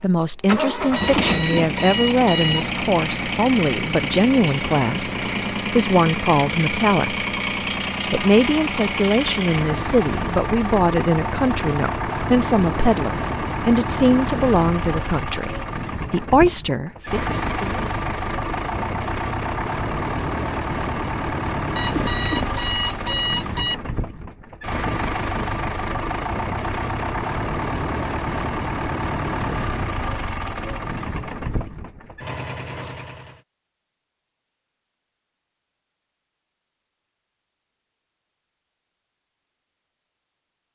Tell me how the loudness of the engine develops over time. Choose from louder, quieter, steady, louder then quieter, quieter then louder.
steady.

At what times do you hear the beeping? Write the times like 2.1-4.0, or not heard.
0.9-2.7, 21.8-23.8.